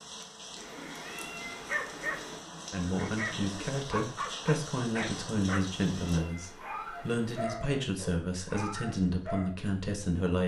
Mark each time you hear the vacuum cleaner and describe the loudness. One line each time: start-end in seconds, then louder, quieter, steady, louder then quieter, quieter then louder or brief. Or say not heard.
not heard.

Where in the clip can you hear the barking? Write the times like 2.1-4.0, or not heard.
0.6-9.6.